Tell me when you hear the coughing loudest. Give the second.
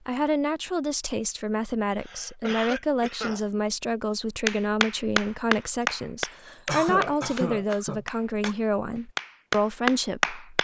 7 s.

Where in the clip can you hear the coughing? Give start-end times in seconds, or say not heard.
1.9-3.5, 6.7-8.6.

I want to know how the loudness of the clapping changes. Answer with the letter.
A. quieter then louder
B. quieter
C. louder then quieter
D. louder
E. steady
A.